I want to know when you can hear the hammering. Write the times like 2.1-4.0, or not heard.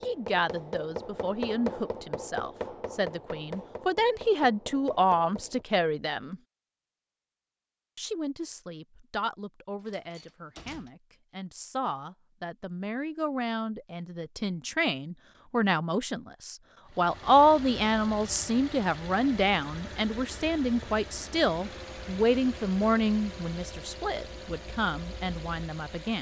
0.0-5.7.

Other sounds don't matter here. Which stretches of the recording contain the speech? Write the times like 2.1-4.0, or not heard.
0.0-6.4, 8.0-26.1.